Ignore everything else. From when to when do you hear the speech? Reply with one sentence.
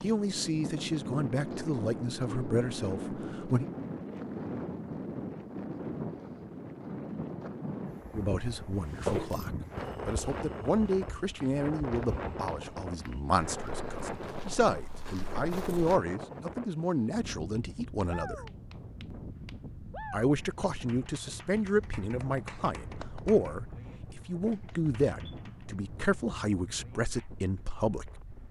You can hear the speech from 0.0 to 3.6 s, from 8.2 to 18.4 s and from 20.1 to 28.1 s.